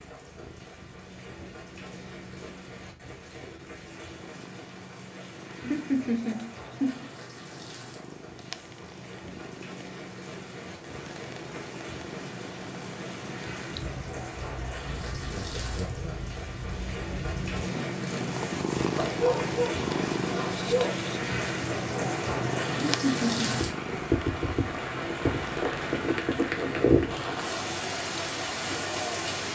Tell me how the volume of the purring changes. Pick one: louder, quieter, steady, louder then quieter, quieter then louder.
louder then quieter.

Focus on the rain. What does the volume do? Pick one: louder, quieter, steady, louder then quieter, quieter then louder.
louder.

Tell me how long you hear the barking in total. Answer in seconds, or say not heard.
2 s.